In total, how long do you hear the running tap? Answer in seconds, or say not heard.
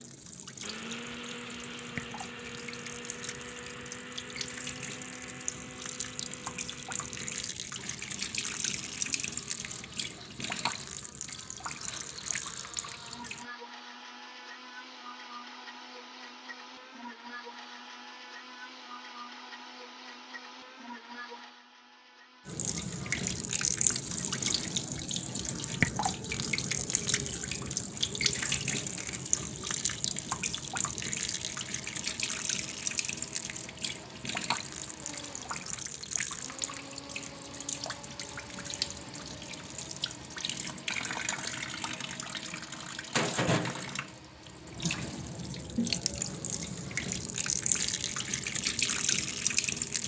41 s.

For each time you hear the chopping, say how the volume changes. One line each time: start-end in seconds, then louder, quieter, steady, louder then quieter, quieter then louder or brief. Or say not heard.
not heard.